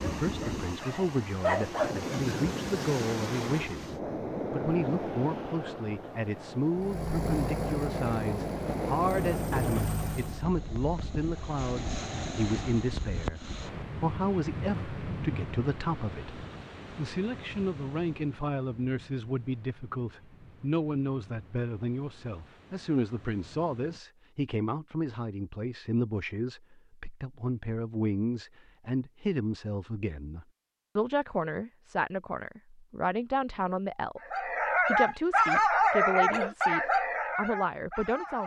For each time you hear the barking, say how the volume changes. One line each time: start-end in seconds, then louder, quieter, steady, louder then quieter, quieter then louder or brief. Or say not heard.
0.2-2.1 brief
34.2-38.4 quieter.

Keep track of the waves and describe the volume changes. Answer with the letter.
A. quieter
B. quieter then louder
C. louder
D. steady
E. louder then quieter
A.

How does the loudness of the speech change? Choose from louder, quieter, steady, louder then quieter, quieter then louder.
steady.